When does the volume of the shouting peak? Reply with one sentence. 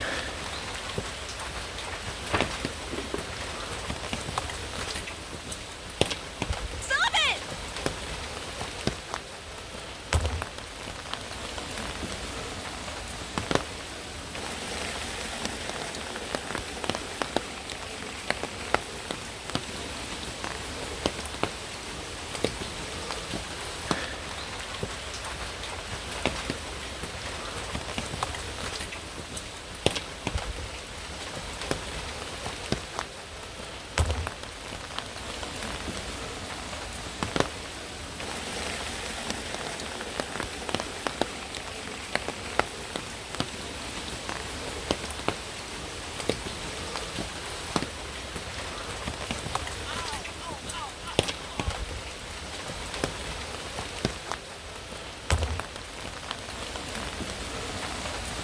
The loudest moment of the shouting is at 7 seconds.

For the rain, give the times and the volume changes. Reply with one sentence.
The rain can be heard from 0.0 to 58.3 s, at a steady volume.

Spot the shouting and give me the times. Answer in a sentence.
The shouting can be heard from 6.8 to 7.4 s and from 49.9 to 51.8 s.